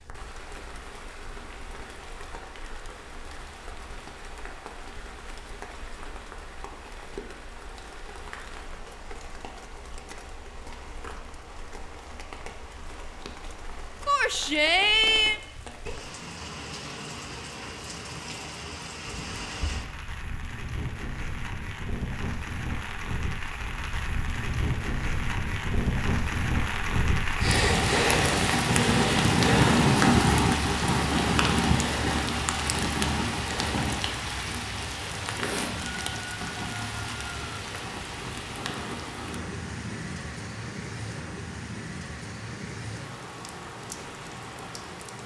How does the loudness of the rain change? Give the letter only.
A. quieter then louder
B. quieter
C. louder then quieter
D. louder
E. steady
C.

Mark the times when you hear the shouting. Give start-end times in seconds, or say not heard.
14.1-15.4.